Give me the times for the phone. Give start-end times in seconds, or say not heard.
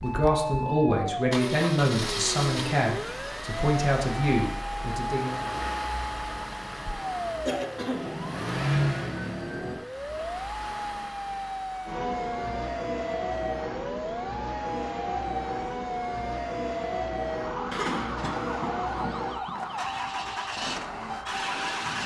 not heard.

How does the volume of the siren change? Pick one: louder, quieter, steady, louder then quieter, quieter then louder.
steady.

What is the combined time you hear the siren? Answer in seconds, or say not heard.
22 s.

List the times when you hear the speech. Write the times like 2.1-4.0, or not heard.
0.0-5.4.